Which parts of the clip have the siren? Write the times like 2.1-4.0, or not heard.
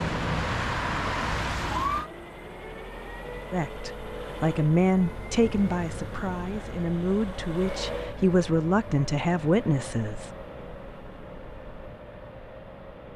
0.0-2.1.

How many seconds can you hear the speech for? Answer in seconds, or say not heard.
7 s.